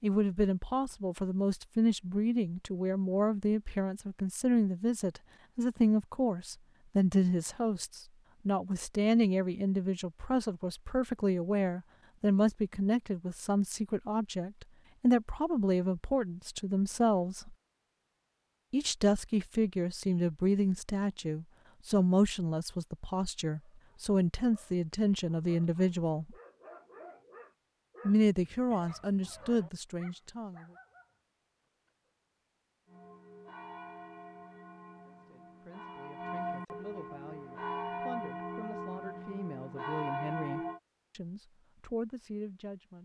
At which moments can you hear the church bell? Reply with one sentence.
You can hear the church bell from 32.9 to 40.8 s.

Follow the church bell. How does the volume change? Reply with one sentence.
The loudness of the church bell goes up.